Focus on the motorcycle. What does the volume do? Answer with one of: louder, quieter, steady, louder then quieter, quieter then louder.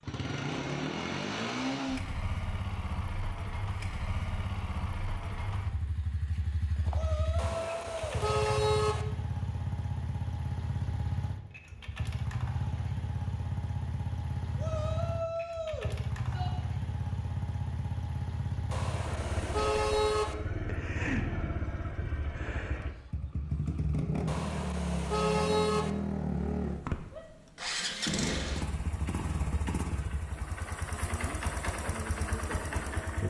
steady.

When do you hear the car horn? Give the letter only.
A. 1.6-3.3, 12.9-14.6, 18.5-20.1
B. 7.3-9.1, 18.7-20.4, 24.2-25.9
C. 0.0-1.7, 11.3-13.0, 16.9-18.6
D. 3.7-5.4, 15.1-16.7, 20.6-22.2
B.